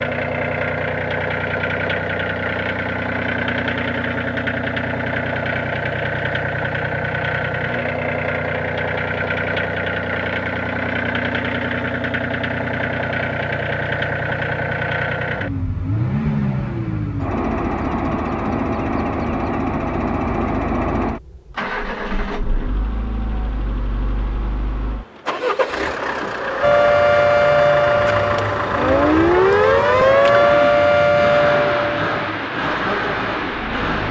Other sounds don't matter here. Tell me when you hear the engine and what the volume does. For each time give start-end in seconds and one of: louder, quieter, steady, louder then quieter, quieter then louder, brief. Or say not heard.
0.0-34.0 steady.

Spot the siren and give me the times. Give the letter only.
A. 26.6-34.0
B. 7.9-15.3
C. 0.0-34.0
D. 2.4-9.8
A.